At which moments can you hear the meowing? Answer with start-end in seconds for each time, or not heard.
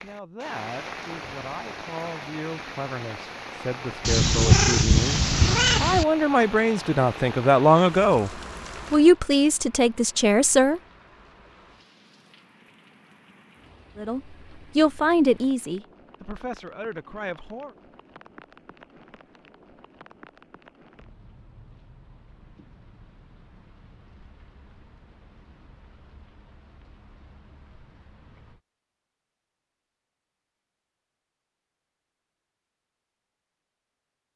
4.0-6.0.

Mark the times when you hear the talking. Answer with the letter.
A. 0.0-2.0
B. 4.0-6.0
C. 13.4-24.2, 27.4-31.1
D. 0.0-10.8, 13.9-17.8
D.